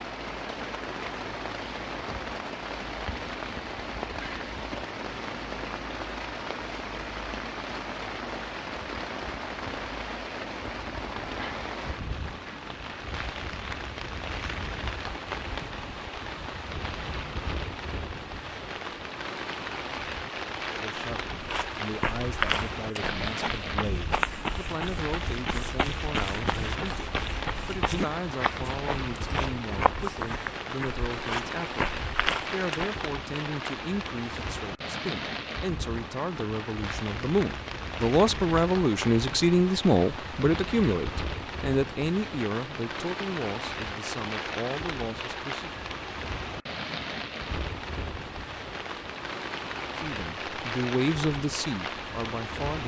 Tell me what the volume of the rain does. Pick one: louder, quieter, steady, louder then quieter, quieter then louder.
steady.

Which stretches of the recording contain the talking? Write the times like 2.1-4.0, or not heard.
20.7-45.8, 50.0-52.8.